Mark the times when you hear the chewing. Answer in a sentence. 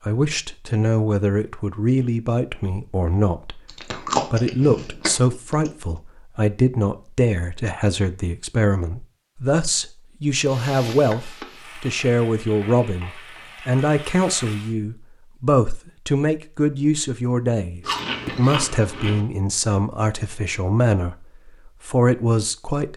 The chewing can be heard from 3.6 to 5.7 s and from 17.8 to 19.2 s.